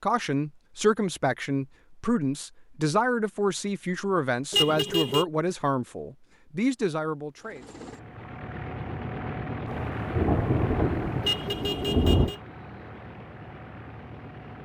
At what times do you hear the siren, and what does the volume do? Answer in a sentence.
The siren can't be heard in this clip.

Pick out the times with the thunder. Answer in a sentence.
The thunder can be heard from 9.7 to 12.3 s.